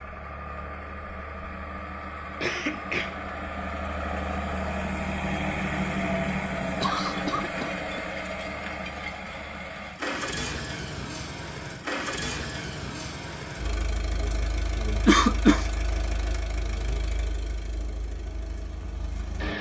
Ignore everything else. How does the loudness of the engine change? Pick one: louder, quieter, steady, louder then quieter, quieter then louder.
louder then quieter.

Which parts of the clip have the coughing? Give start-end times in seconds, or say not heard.
2.4-3.2, 6.6-8.1, 15.1-15.7.